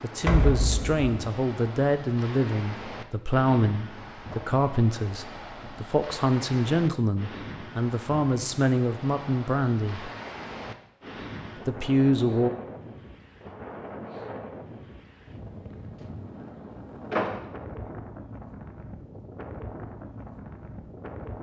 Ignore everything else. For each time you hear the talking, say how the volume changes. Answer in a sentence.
You can hear the talking from 0.0 to 10.1 s, at a steady volume; and briefly from 11.7 to 12.5 s.